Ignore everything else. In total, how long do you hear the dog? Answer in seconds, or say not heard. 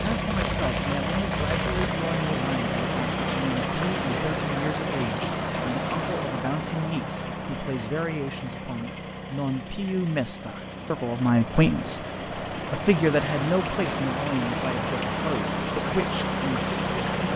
not heard.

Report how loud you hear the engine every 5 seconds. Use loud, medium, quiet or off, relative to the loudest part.
loud, medium, medium, loud.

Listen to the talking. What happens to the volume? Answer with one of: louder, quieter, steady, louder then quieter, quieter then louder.
louder then quieter.